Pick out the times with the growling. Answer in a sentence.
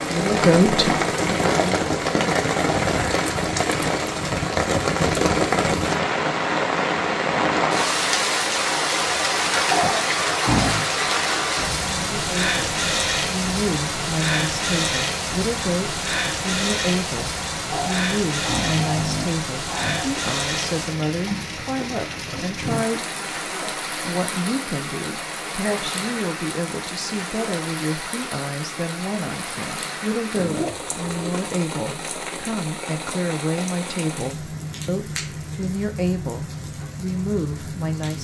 The growling can be heard from 9.7 to 10.9 s, from 17.7 to 20.1 s and from 30.3 to 31.4 s.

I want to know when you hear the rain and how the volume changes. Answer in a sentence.
The rain can be heard from 0.0 to 38.1 s, getting quieter.